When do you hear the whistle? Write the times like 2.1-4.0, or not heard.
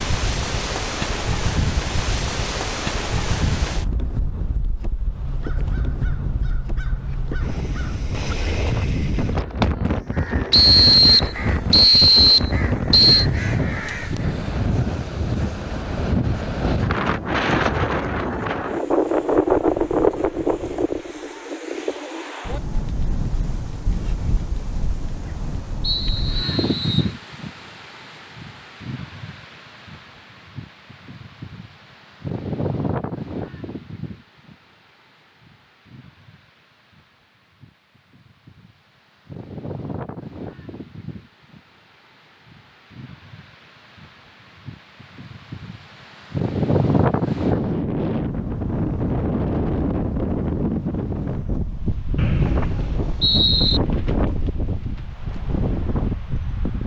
10.5-13.2, 25.8-27.1, 52.1-53.8.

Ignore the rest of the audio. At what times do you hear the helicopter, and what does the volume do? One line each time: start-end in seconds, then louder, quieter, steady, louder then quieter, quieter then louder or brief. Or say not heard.
not heard.